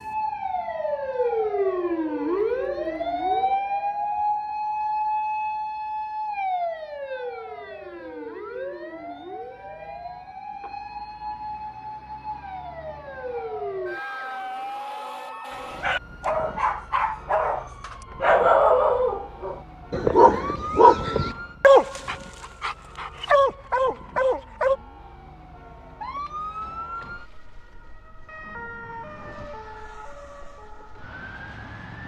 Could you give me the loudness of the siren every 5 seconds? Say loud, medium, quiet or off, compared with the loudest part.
loud, medium, medium, quiet, quiet, quiet, quiet.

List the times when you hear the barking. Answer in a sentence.
The barking can be heard from 15.5 to 24.8 s.